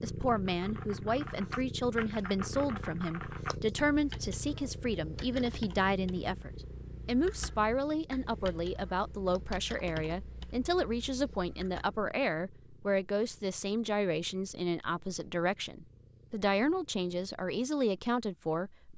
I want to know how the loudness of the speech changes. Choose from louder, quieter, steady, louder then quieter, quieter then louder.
steady.